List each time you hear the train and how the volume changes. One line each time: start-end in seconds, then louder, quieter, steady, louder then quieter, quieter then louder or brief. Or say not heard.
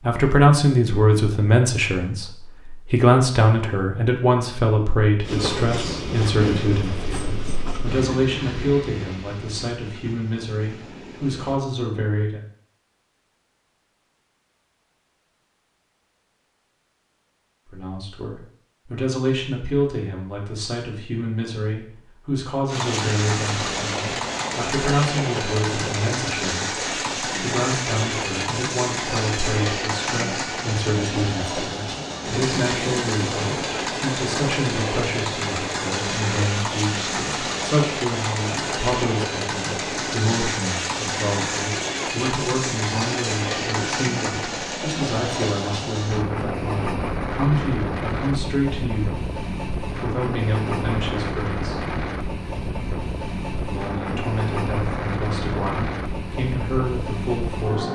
5.2-11.6 quieter
22.6-57.9 steady.